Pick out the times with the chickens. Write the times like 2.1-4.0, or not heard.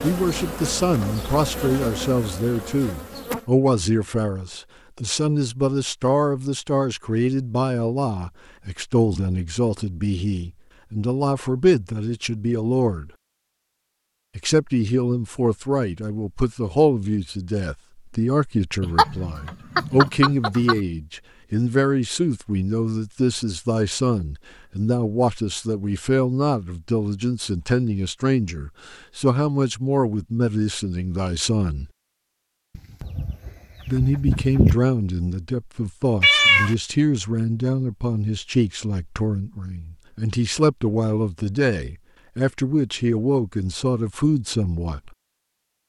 18.8-20.8, 32.8-34.8.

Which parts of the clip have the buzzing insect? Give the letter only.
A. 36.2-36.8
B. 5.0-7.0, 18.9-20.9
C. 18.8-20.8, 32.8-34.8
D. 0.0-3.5
D.